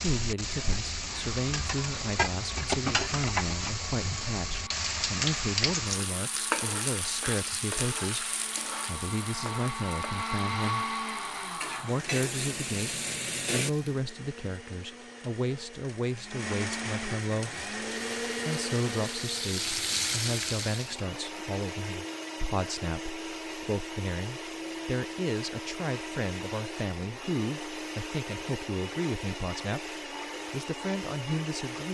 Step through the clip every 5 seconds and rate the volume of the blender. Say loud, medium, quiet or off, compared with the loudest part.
medium, medium, loud, loud, loud, loud, loud.